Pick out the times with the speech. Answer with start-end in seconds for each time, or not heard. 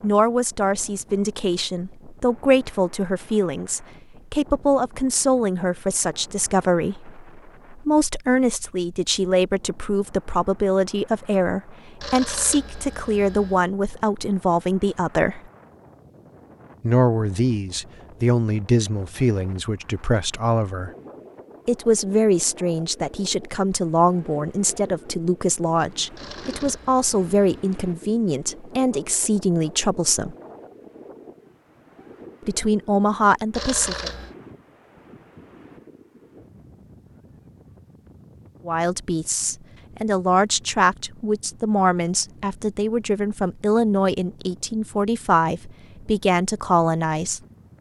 0.0-15.4, 16.8-20.9, 21.6-30.4, 32.5-34.1, 38.6-47.4.